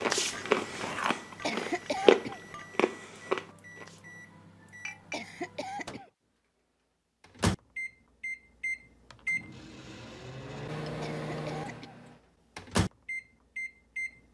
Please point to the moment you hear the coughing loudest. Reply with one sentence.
The volume of the coughing peaks at 2 seconds.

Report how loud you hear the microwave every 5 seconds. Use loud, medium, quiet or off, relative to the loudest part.
quiet, loud, loud.